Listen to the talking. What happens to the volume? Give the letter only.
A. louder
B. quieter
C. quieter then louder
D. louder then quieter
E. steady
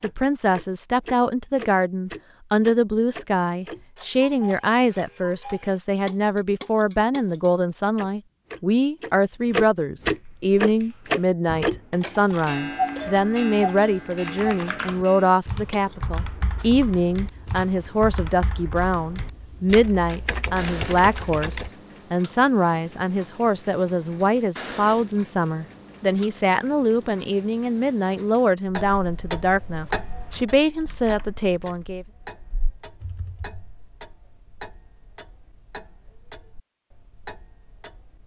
E.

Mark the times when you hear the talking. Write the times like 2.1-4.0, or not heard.
0.0-32.0.